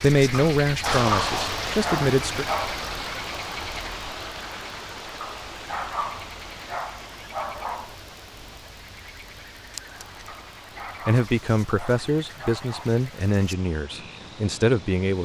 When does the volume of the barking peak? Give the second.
1 s.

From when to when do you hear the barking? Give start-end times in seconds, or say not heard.
0.3-2.8, 5.2-8.0, 10.2-12.9.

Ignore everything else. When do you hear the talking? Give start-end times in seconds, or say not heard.
0.0-2.5, 11.1-15.2.